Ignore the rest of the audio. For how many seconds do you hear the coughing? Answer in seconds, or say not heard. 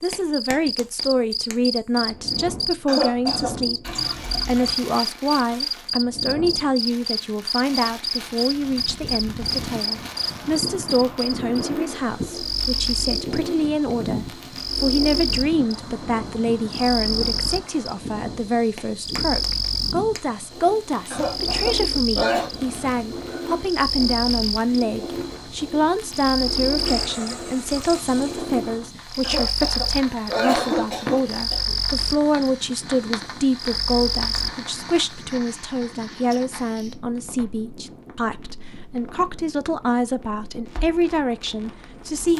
5 s.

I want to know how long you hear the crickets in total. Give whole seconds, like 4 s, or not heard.
35 s.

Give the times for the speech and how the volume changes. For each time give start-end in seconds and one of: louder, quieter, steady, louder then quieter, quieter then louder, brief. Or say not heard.
0.0-42.3 steady.